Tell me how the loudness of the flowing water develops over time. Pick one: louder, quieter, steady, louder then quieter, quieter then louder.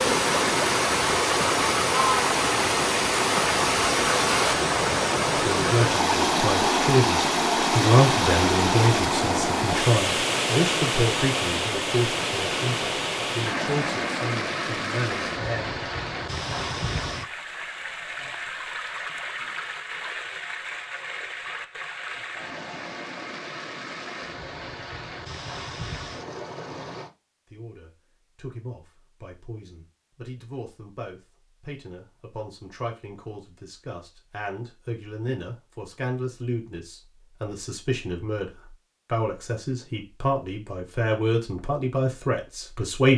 quieter.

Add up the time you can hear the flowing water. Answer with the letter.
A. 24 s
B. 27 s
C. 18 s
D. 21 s
B.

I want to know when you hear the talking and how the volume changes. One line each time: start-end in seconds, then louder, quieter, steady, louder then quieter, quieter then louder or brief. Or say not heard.
5.3-15.8 quieter
27.4-43.1 louder.